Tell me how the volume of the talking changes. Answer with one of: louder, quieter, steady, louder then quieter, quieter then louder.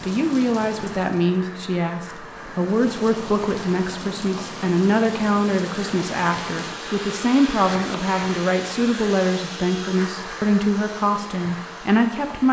steady.